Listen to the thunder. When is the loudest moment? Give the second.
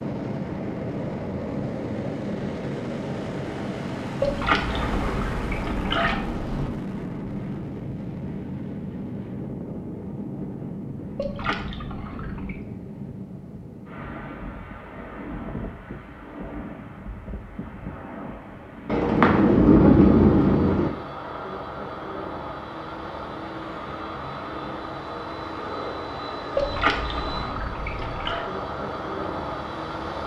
20 s.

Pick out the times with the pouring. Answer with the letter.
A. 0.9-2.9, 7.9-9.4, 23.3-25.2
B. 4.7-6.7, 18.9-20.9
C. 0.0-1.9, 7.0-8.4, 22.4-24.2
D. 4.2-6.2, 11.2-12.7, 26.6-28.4
D.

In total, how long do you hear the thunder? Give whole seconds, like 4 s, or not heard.
4 s.